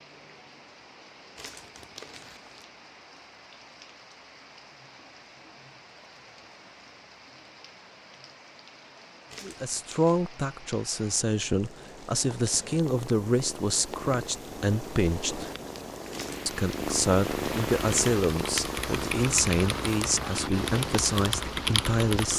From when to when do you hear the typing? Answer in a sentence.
The typing can be heard from 17.8 to 22.3 s.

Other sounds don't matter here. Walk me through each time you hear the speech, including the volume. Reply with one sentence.
The speech can be heard from 9.4 to 15.5 s, at a steady volume; and from 16.4 to 22.3 s, at a steady volume.